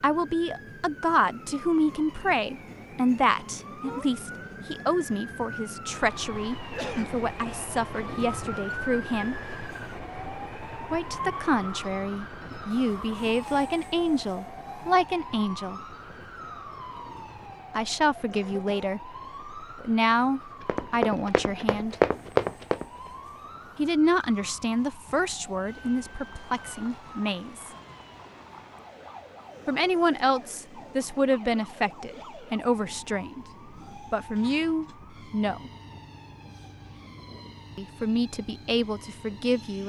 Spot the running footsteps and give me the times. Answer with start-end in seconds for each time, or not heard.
20.6-22.9.